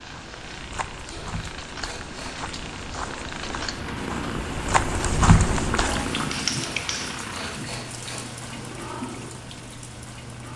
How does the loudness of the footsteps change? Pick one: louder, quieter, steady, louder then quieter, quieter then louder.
louder.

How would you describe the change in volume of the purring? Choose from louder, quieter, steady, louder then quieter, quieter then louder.
louder then quieter.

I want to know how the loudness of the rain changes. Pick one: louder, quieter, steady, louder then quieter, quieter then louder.
louder then quieter.